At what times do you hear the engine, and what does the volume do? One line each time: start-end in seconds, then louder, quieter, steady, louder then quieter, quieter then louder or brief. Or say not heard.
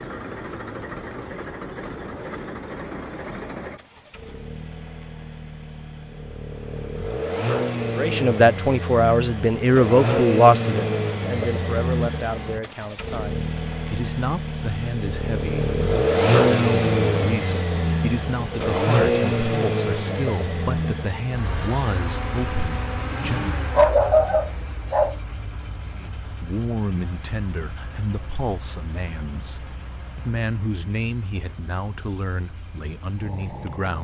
0.0-34.0 louder then quieter.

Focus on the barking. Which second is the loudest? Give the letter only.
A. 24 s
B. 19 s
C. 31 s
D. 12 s
A.